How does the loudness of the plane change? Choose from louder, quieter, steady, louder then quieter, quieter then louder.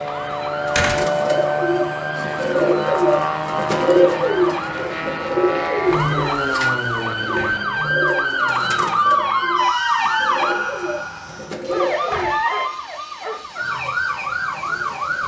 quieter.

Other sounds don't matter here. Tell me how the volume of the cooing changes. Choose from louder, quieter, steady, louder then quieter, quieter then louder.
quieter.